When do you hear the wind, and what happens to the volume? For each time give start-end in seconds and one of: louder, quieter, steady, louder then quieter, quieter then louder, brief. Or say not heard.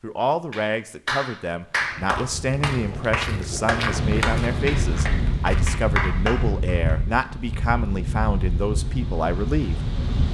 3.9-10.2 steady.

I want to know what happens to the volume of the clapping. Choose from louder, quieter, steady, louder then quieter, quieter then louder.
steady.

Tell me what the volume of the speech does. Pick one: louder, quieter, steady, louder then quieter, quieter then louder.
steady.